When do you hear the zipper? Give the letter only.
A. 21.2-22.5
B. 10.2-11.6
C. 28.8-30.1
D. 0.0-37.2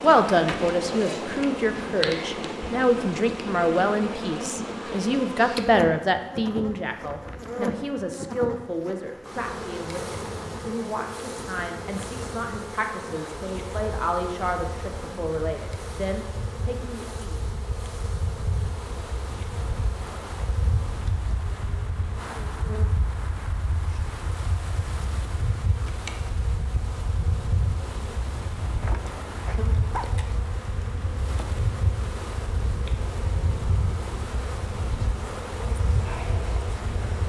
C.